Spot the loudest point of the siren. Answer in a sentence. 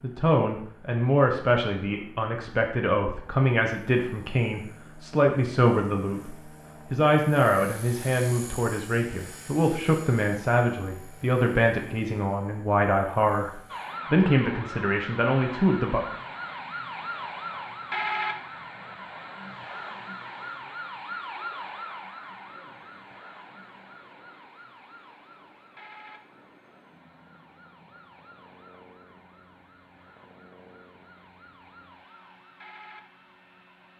The volume of the siren peaks at 18 seconds.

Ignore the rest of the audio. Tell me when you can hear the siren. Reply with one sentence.
You can hear the siren from 13.7 to 33.9 s.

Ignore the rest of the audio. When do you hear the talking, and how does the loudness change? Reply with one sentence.
The talking can be heard from 0.0 to 16.0 s, at a steady volume.